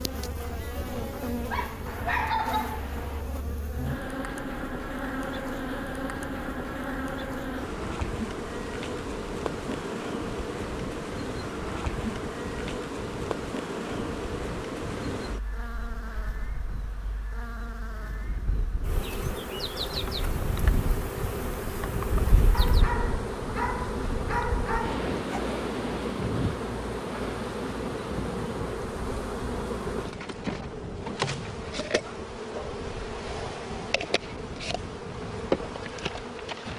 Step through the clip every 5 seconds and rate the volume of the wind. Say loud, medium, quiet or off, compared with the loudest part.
medium, medium, medium, medium, loud, loud, medium, medium.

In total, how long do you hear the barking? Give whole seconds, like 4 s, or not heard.
5 s.